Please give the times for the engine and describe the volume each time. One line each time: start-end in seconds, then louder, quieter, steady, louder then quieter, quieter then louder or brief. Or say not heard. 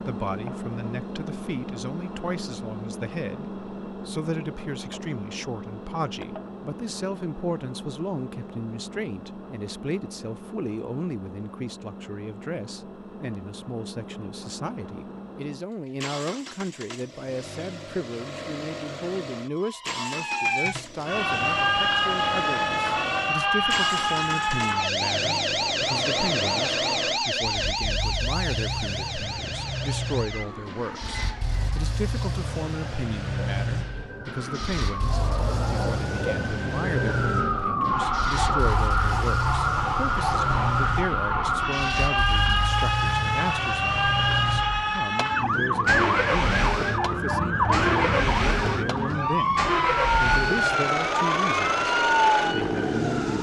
0.0-53.3 louder.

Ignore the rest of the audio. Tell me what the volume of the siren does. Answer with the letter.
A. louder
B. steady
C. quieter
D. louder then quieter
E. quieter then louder
E.